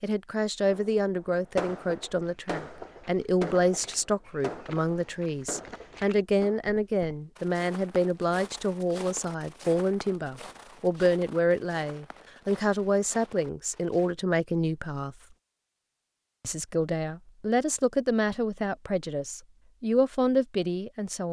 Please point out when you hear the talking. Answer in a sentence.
The talking can be heard from 0.0 to 15.2 s and from 16.4 to 21.2 s.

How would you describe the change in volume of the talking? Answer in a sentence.
The volume of the talking stays about the same.